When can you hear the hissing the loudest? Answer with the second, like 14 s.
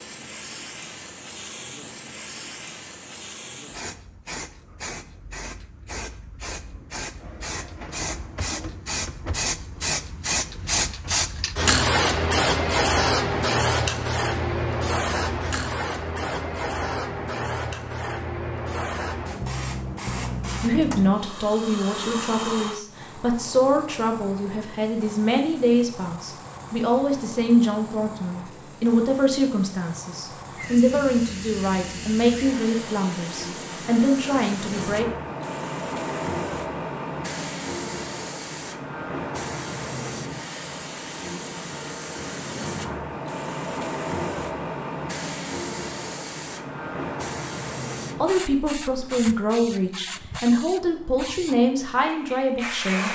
12 s.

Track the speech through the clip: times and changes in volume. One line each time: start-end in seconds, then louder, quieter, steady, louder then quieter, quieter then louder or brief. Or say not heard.
20.6-35.0 steady
48.2-53.1 steady.